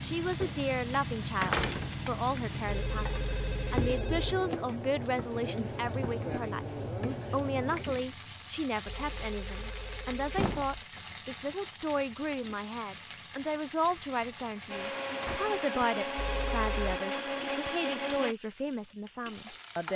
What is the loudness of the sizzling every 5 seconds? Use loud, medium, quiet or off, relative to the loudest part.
loud, loud, medium, medium.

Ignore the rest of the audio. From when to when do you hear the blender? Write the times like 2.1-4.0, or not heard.
14.7-18.4.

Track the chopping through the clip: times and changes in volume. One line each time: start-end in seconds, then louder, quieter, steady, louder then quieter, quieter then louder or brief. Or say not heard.
not heard.